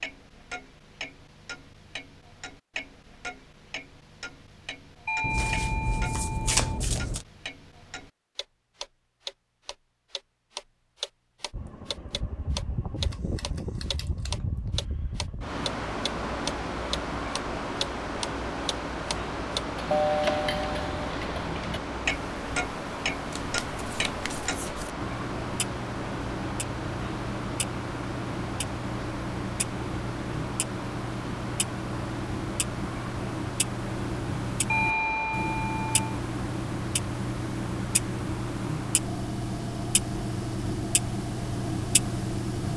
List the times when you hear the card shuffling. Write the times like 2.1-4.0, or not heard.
5.2-7.2, 23.3-24.9.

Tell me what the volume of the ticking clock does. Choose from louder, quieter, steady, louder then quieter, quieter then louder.
louder.